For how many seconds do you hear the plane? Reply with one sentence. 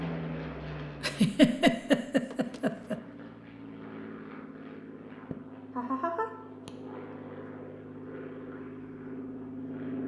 You can hear the plane for 10 seconds altogether.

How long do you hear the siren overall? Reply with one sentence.
You can't hear the siren here.